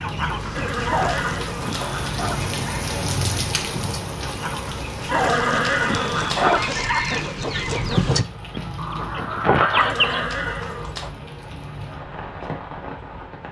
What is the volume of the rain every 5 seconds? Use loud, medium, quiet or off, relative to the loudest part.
loud, medium, medium.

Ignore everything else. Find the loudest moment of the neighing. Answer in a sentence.
The volume of the neighing peaks at 6 seconds.